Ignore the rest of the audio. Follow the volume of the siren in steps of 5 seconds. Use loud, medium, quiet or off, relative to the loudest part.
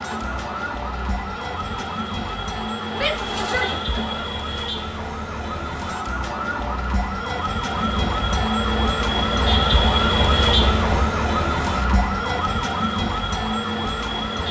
medium, loud, loud.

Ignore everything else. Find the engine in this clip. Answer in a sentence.
The engine can be heard from 0.0 to 4.2 s and from 7.8 to 11.1 s.